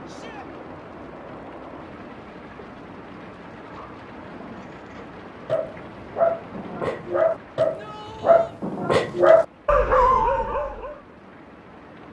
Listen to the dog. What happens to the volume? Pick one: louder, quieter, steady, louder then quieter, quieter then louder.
louder.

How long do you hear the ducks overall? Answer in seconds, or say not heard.
not heard.